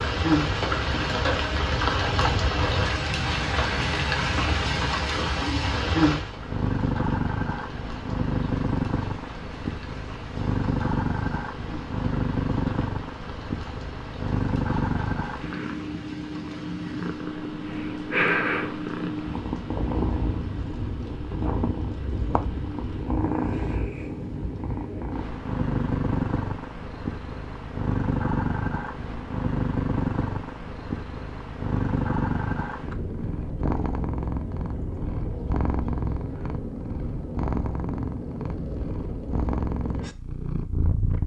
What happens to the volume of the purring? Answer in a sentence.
The volume of the purring stays about the same.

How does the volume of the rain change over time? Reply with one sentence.
The volume of the rain goes down.